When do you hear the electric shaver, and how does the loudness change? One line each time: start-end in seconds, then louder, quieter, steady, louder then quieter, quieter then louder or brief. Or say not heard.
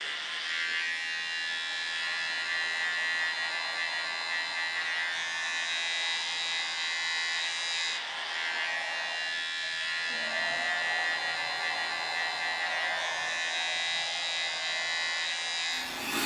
0.0-16.2 steady.